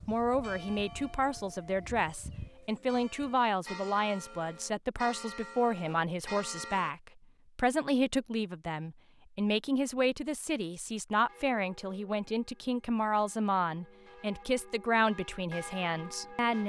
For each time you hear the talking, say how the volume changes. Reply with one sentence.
The talking can be heard from 0.1 to 16.6 s, at a steady volume.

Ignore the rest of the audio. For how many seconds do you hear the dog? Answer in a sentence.
The dog can't be heard in this clip.